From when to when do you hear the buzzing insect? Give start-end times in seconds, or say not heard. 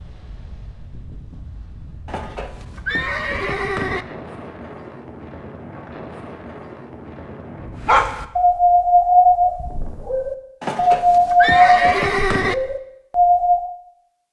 not heard.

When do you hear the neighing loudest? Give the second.
12 s.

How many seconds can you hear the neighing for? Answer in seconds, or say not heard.
4 s.